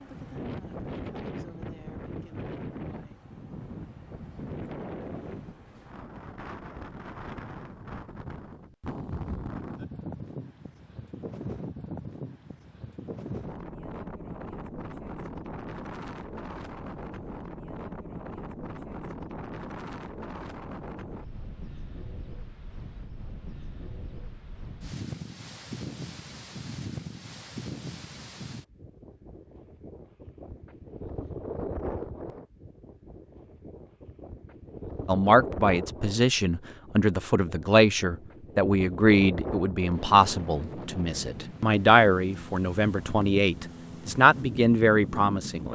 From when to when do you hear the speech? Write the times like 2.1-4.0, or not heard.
35.0-45.7.